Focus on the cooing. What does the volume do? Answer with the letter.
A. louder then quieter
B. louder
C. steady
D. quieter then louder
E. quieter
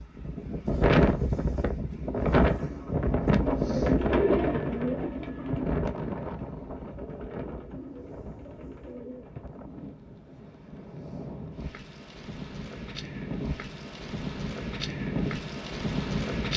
A.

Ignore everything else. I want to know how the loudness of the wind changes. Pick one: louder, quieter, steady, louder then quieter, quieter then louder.
quieter then louder.